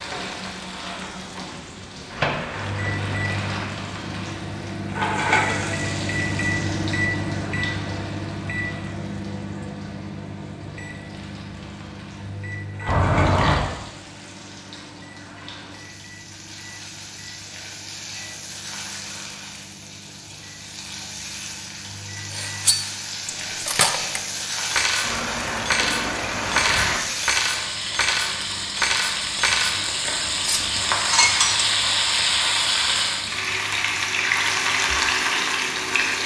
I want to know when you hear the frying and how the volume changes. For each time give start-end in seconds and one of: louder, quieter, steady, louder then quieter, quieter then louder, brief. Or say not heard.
0.0-36.2 quieter then louder.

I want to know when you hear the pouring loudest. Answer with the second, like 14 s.
13 s.